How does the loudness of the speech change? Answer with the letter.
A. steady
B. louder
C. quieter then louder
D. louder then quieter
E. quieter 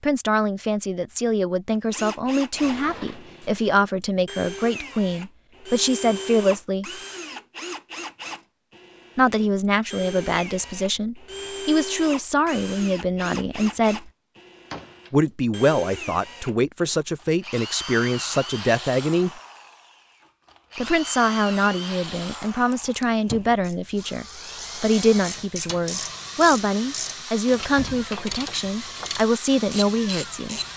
A.